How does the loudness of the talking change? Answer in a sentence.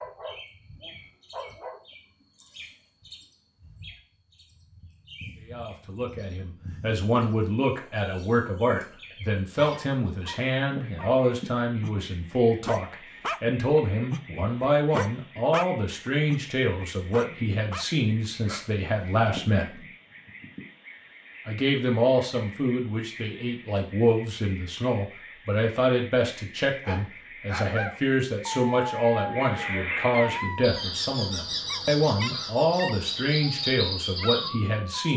The loudness of the talking stays about the same.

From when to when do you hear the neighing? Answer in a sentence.
You can't hear the neighing here.